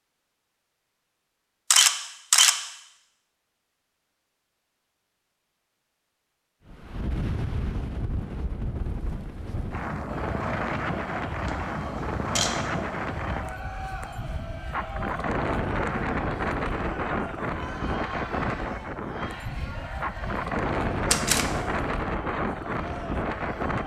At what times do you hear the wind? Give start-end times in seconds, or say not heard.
6.7-23.8.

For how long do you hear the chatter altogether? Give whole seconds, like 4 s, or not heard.
14 s.